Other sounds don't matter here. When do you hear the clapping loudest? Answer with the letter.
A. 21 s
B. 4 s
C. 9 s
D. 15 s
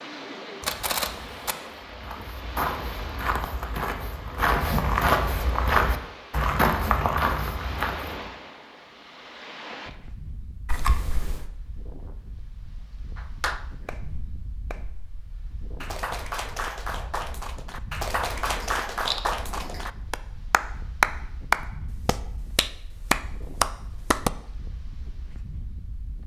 A.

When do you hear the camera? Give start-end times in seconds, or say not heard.
0.6-1.6, 10.7-11.5, 18.4-19.8.